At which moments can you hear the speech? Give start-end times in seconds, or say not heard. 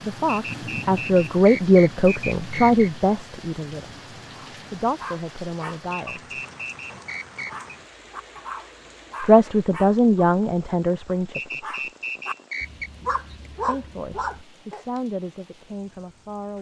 0.0-3.9, 4.5-6.4, 9.2-11.8, 13.5-16.5.